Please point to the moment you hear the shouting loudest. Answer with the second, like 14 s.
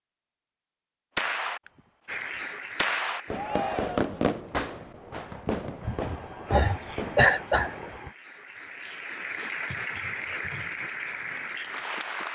4 s.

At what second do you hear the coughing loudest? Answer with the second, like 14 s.
7 s.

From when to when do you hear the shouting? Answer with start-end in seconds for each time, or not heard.
3.3-4.2, 6.8-7.2.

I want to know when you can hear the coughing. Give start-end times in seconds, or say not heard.
5.8-8.1.